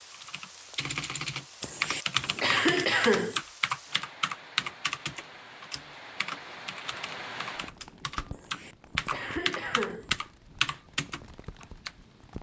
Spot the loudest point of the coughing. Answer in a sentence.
The loudest moment of the coughing is at 3 seconds.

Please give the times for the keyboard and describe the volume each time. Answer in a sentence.
The keyboard can be heard from 0.1 to 11.9 s, getting quieter then louder.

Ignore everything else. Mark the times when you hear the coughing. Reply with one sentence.
The coughing can be heard from 1.6 to 3.4 s and from 8.3 to 10.1 s.